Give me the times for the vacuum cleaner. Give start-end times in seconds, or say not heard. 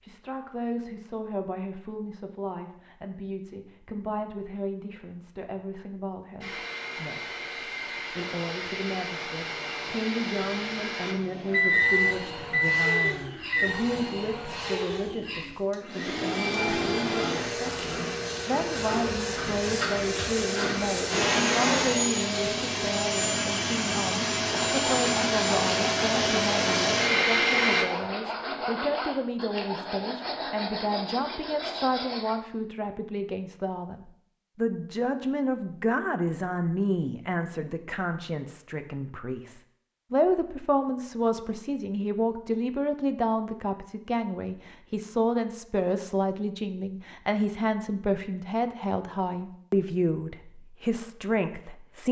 6.4-27.9.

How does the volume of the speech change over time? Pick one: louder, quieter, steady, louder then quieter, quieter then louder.
louder.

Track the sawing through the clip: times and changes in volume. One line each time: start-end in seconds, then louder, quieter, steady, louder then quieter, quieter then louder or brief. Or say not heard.
24.4-32.4 steady.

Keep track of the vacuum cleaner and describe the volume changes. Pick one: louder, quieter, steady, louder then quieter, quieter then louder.
louder.